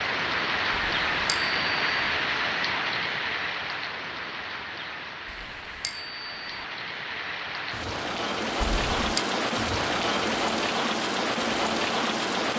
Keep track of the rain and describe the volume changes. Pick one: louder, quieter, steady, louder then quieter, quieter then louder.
quieter then louder.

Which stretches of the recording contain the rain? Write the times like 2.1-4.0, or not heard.
0.0-12.5.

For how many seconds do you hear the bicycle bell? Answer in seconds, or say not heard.
3 s.